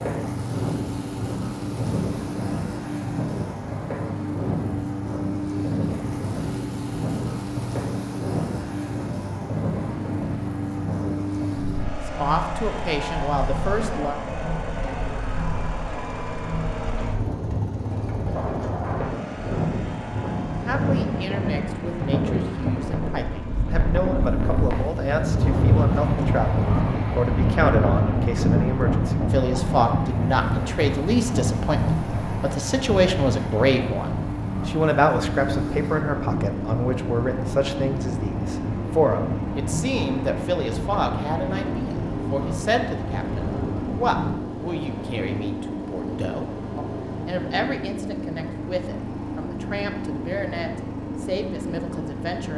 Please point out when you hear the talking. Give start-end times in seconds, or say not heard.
12.0-14.2, 20.6-52.5.